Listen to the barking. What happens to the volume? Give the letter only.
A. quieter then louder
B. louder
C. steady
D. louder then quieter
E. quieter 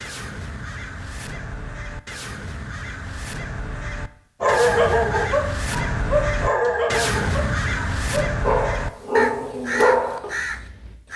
A.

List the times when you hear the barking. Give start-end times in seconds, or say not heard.
4.4-10.9.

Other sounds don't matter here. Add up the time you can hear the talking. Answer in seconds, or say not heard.
not heard.